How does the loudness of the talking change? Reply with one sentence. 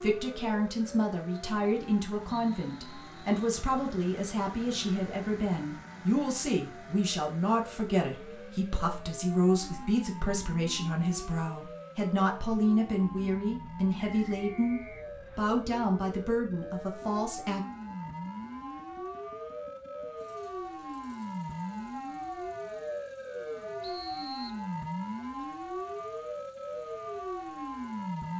The loudness of the talking stays about the same.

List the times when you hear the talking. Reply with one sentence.
The talking can be heard from 0.0 to 17.6 s.